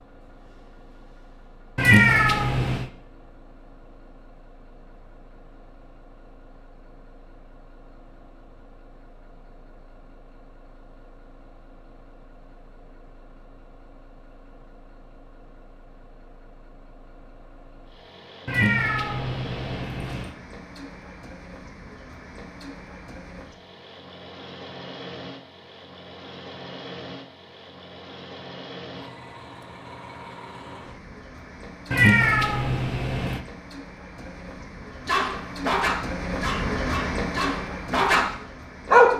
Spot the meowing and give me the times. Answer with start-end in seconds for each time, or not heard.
1.8-2.9, 18.4-20.4, 31.9-33.4.